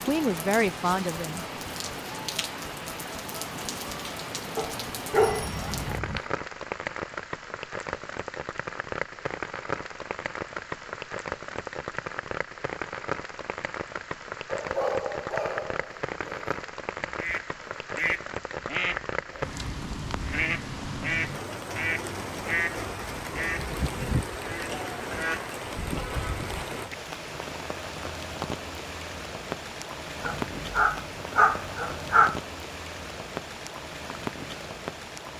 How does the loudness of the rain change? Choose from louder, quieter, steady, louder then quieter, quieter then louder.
steady.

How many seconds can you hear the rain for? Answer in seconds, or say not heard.
35 s.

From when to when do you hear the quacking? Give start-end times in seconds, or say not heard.
17.1-26.9.